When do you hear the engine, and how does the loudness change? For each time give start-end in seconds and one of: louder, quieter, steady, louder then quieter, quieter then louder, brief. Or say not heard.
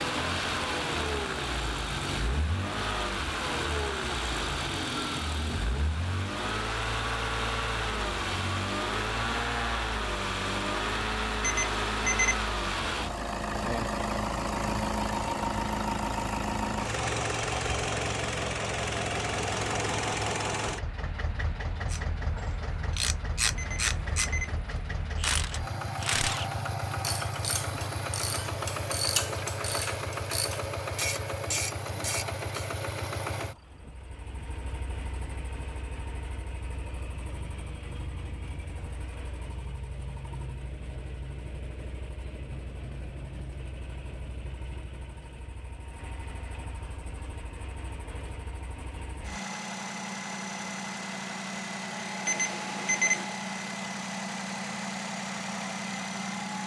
0.0-56.6 quieter then louder.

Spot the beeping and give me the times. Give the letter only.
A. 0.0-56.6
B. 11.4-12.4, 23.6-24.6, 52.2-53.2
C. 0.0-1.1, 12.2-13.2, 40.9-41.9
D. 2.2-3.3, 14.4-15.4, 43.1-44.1
B.